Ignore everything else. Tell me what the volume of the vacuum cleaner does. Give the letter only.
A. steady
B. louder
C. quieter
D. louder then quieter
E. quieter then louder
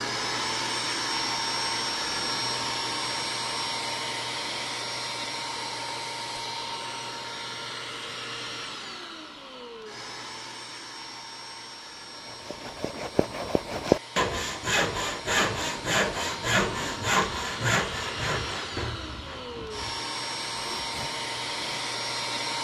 E.